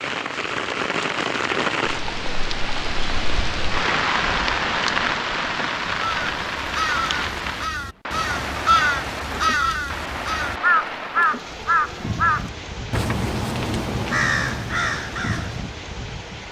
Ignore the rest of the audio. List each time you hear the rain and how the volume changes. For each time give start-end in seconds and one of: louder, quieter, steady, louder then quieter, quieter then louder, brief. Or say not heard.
0.0-16.4 quieter.